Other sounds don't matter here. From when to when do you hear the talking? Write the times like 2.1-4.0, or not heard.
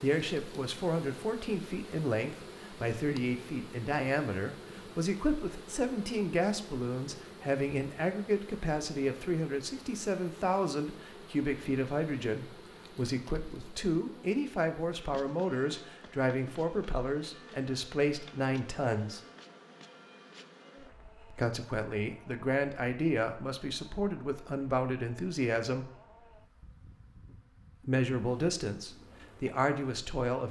0.0-19.2, 21.3-25.9, 27.8-30.4.